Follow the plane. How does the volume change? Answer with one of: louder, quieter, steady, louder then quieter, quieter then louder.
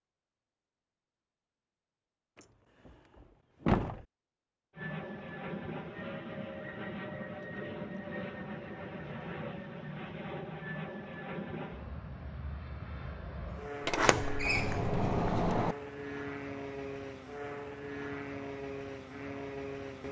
steady.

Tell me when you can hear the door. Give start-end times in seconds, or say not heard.
2.4-4.0, 13.8-15.8.